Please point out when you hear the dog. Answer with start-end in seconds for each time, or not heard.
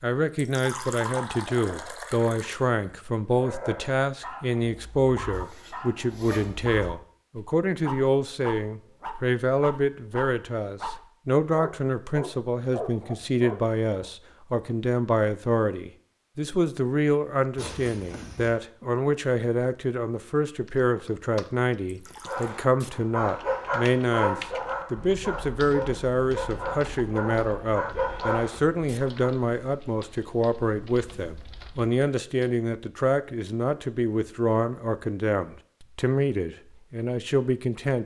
3.4-14.1, 22.2-29.1.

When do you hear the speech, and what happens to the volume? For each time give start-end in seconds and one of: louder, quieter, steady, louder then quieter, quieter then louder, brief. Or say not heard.
0.0-38.0 steady.